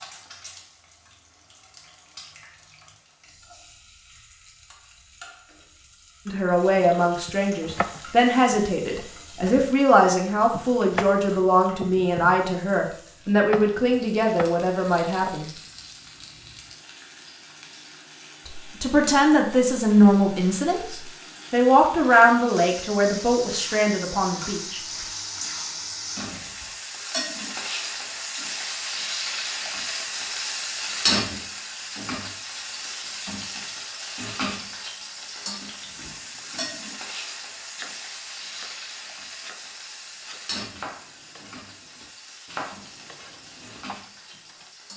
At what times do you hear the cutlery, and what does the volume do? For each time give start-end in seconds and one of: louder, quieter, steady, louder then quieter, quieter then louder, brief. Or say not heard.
not heard.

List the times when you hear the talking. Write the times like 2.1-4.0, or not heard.
6.2-15.5, 18.4-24.8.